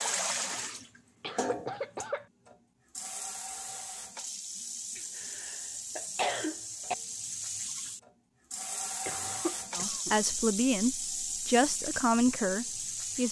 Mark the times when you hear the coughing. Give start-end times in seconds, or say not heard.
0.5-2.2, 5.0-7.0, 9.1-10.2.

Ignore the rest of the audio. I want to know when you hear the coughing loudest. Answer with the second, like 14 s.
6 s.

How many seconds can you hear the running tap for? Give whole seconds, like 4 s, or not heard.
13 s.